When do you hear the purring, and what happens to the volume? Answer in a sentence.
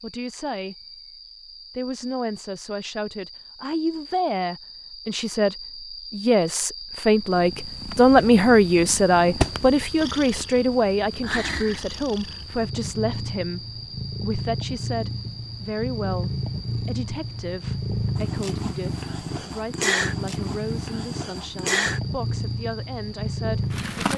You can hear the purring from 7.2 to 24.1 s, getting louder.